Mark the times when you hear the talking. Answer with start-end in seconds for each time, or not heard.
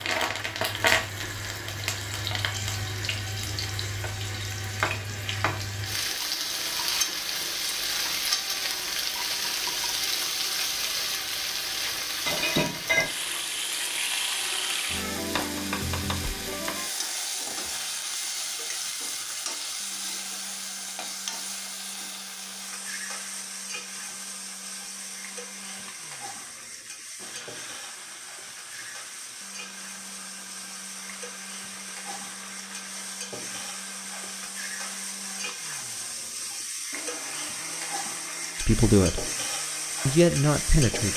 38.5-39.3, 40.0-41.1.